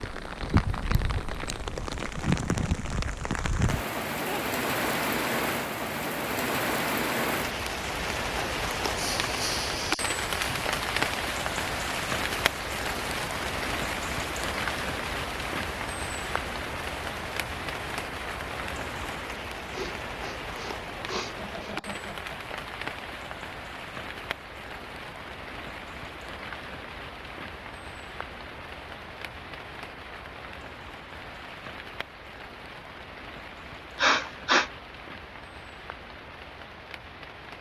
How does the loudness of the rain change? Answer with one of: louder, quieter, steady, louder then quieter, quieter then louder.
quieter.